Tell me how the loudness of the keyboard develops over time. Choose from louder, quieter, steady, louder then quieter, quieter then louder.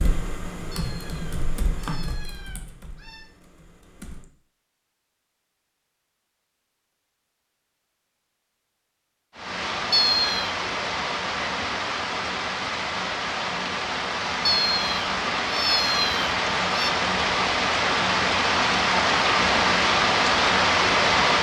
quieter.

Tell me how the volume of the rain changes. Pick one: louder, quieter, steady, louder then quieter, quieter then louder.
louder.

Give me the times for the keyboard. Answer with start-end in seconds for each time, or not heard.
0.0-4.3.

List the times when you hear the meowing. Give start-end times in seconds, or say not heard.
0.7-3.2, 9.9-10.6, 14.4-16.9.